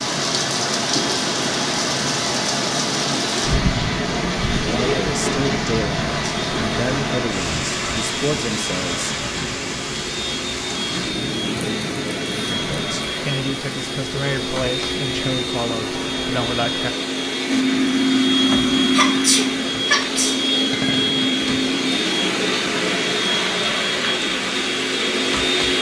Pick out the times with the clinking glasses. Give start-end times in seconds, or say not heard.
20.7-21.3.